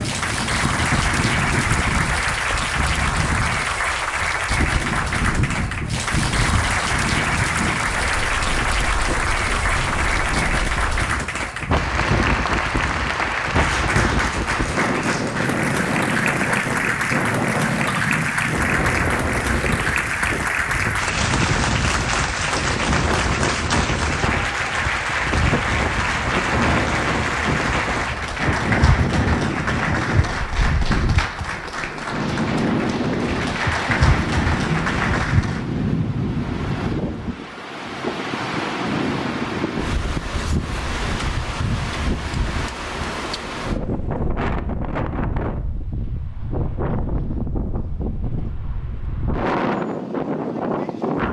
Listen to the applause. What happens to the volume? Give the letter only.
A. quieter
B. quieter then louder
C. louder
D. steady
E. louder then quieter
D.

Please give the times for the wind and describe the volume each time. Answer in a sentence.
You can hear the wind from 0.0 to 51.2 s, at a steady volume.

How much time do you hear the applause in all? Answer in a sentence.
You can hear the applause for 36 seconds altogether.